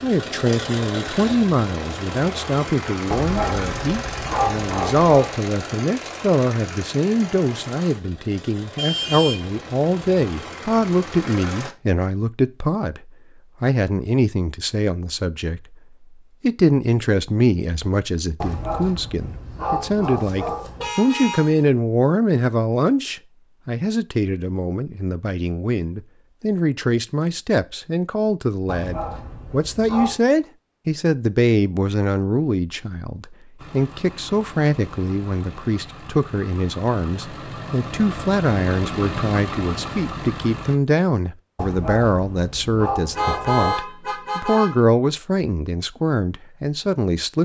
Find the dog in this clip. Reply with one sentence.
You can hear the dog from 3.1 to 5.3 s, from 18.4 to 20.9 s, from 28.6 to 30.2 s and from 41.5 to 43.9 s.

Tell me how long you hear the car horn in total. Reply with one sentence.
You can hear the car horn for 4 seconds altogether.